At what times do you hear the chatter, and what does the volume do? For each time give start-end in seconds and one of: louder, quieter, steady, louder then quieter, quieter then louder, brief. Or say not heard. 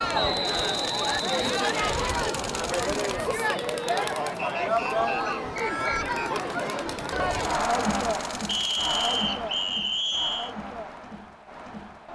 0.0-12.1 quieter.